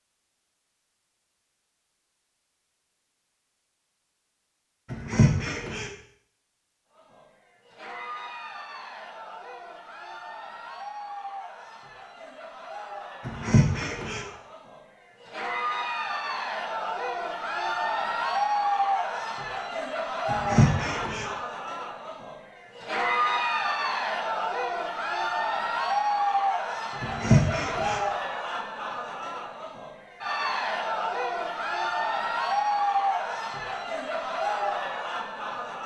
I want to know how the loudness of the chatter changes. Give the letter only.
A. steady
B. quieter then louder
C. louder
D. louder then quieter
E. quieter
C.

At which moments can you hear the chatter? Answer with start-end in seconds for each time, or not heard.
6.9-35.8.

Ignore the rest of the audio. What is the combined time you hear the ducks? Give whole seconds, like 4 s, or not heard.
4 s.